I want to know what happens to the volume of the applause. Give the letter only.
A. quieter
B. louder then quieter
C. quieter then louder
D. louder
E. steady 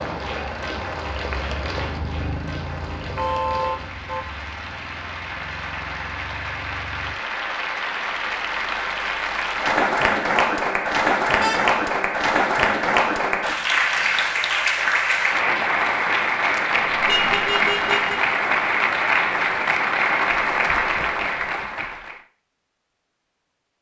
D.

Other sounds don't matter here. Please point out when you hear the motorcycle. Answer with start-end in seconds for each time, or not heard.
0.2-7.2.